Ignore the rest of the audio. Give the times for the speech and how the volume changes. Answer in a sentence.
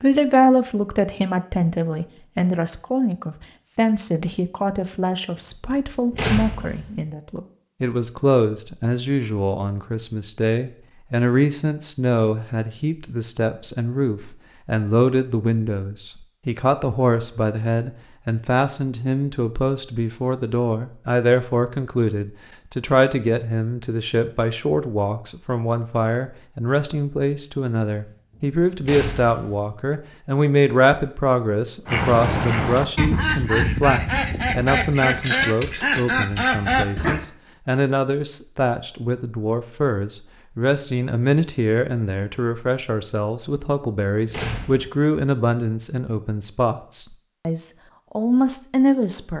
The speech can be heard from 0.0 to 49.3 s, at a steady volume.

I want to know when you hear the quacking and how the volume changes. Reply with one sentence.
You can hear the quacking from 31.9 to 37.2 s, at a steady volume.